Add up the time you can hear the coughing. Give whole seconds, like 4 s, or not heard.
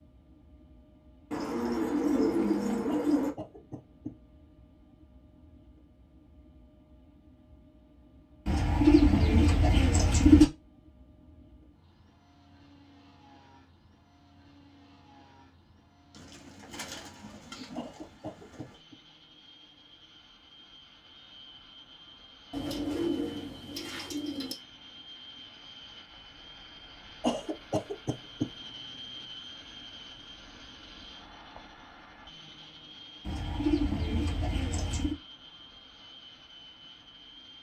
4 s.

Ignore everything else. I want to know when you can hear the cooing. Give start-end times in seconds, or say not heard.
1.3-3.3, 8.4-10.4, 16.1-18.8, 22.5-24.6, 33.2-35.1.